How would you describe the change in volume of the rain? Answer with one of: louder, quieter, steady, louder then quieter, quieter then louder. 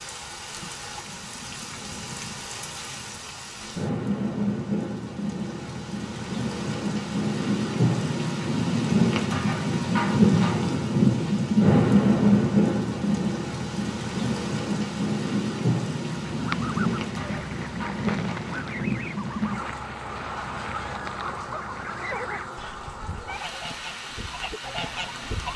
louder then quieter.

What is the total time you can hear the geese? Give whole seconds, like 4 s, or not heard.
9 s.